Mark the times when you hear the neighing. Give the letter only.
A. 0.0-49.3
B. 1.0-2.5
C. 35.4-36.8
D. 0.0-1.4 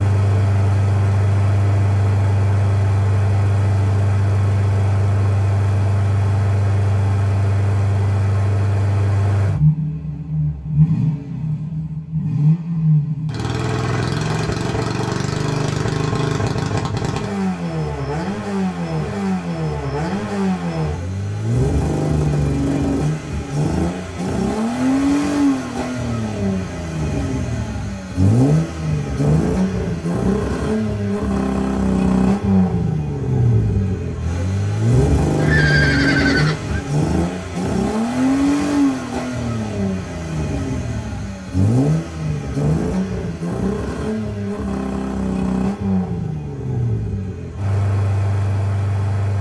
C.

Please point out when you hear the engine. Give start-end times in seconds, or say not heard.
0.0-49.3.